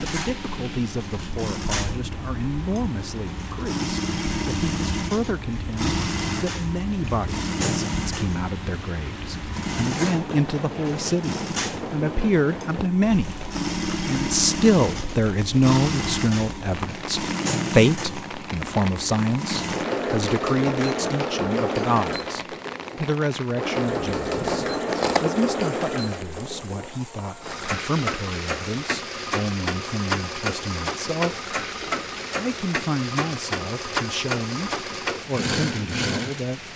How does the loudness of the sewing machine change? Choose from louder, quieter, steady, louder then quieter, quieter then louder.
steady.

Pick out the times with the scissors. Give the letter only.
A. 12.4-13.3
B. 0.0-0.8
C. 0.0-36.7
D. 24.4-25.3
D.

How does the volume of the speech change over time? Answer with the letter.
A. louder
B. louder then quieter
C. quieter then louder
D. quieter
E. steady
B.